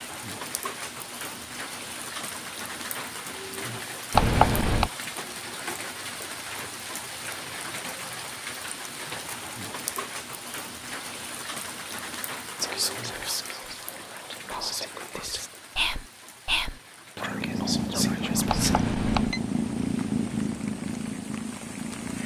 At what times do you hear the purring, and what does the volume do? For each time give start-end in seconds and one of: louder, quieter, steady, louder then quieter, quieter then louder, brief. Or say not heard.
17.2-22.2 quieter.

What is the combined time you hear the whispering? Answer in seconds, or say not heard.
6 s.